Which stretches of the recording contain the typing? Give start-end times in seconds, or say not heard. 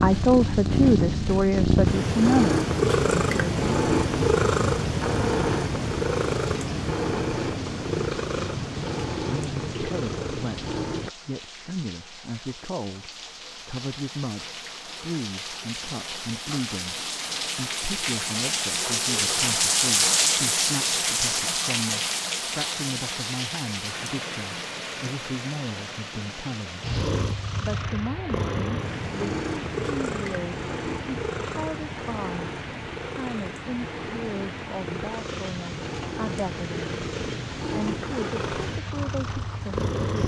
not heard.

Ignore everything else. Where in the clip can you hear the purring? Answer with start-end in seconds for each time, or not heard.
0.0-11.1, 26.8-40.2.